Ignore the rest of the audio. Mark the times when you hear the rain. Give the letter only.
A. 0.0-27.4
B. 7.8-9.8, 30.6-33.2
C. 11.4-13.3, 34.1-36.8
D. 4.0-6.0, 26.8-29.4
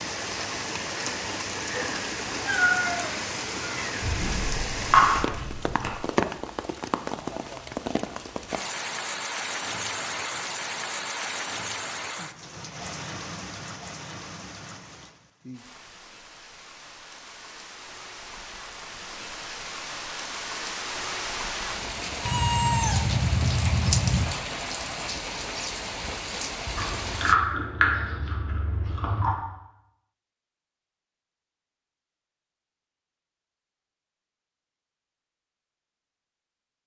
A.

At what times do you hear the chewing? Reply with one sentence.
The chewing can be heard from 4.0 to 6.0 s and from 26.8 to 29.4 s.